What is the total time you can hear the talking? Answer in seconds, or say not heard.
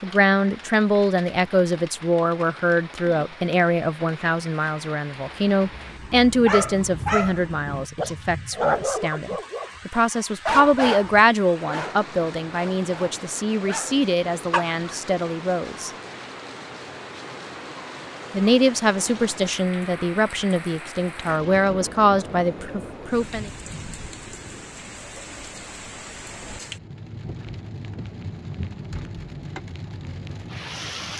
21 s.